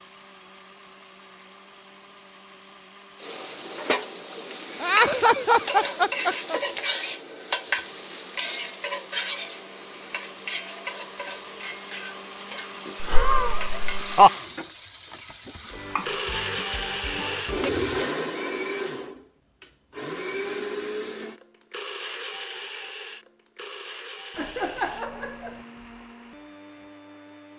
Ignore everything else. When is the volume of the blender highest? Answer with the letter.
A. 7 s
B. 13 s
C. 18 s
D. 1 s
C.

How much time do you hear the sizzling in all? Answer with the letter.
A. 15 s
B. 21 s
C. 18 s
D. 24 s
A.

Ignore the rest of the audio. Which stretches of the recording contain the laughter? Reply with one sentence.
You can hear the laughter from 4.8 to 6.6 s, from 13.0 to 14.3 s and from 24.4 to 25.6 s.